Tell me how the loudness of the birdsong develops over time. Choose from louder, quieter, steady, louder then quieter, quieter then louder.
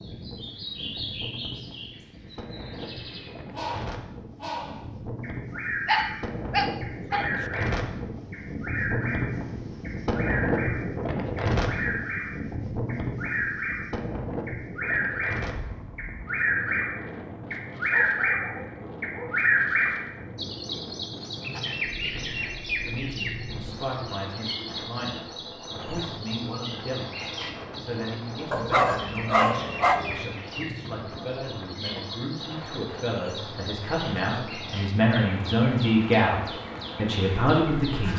louder then quieter.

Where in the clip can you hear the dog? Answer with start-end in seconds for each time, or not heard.
5.8-7.3, 17.9-19.4, 28.5-30.2.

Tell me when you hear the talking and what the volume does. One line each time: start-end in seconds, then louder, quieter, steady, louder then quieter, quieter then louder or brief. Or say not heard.
22.9-38.1 louder.